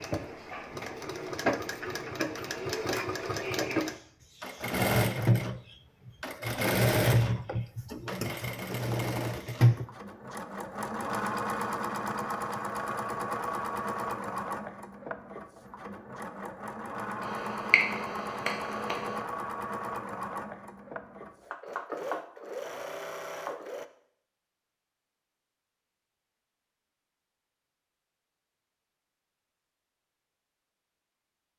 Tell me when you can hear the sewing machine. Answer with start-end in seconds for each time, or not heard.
0.0-23.9.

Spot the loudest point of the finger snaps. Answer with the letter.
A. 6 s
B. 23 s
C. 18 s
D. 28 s
C.